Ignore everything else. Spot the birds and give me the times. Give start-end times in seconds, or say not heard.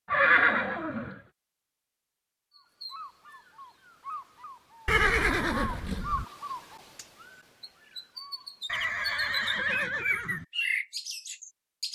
2.5-11.9.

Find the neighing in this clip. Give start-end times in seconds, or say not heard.
0.1-1.1, 4.8-6.2, 8.7-10.4.